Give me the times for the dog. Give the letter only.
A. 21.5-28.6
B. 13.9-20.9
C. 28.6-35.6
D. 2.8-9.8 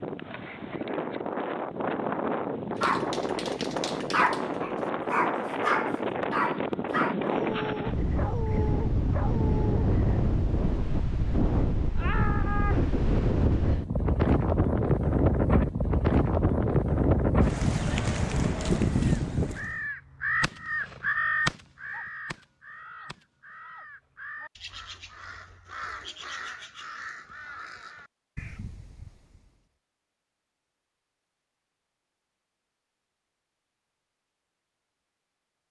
D.